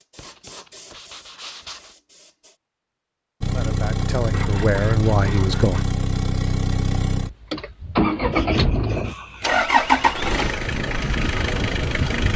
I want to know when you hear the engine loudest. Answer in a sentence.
The loudest moment of the engine is at 10 seconds.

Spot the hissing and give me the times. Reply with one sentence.
The hissing can be heard from 0.0 to 2.6 s.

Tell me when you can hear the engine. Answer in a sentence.
The engine can be heard from 3.4 to 12.3 s.